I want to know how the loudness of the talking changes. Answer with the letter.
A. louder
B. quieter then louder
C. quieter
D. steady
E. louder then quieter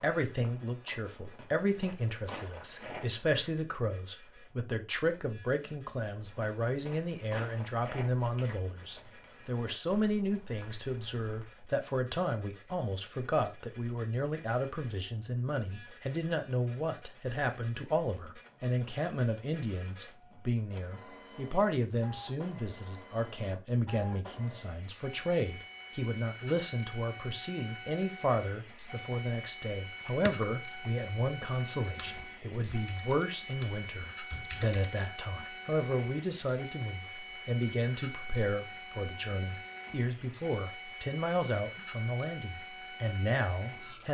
D.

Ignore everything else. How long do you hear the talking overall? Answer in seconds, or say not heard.
44 s.